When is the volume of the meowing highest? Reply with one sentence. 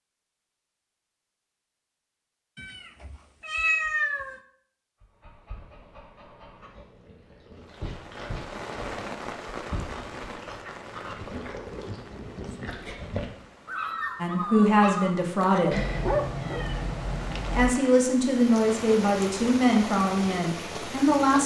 The volume of the meowing peaks at 4 seconds.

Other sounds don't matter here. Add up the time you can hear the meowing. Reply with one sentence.
The meowing can be heard for 4 seconds in total.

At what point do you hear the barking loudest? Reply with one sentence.
The volume of the barking peaks at 16 seconds.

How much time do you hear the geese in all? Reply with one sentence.
The geese can't be heard in this clip.